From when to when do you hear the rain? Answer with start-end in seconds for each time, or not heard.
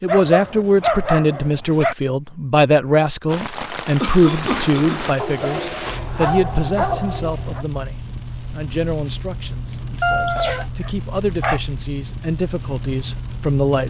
3.2-13.8.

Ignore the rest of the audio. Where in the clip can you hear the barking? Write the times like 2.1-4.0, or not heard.
0.1-1.9, 5.2-7.7, 10.0-11.6.